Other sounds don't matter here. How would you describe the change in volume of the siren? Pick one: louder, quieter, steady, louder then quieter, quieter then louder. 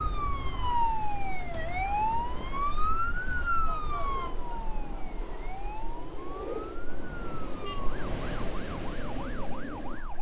quieter.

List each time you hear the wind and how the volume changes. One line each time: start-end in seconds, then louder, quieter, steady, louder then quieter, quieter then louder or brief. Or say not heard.
0.0-10.1 louder.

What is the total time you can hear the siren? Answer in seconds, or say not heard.
10 s.